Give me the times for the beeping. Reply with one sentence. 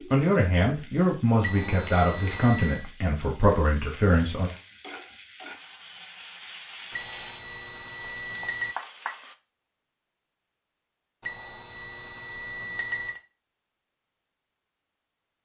The beeping can be heard from 1.4 to 2.9 s, from 6.9 to 8.8 s and from 11.2 to 13.2 s.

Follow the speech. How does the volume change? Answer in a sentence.
The volume of the speech goes down, then up.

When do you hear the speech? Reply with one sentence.
You can hear the speech from 0.1 to 4.5 s.